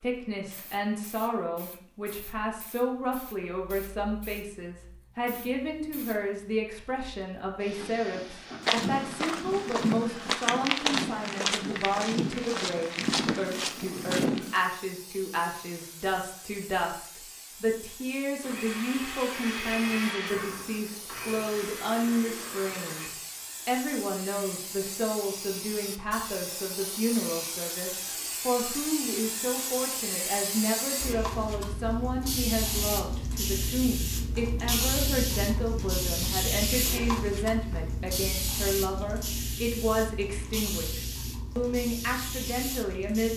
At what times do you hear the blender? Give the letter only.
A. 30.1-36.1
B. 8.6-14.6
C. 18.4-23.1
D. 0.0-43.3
C.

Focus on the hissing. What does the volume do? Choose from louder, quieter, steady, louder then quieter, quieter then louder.
louder.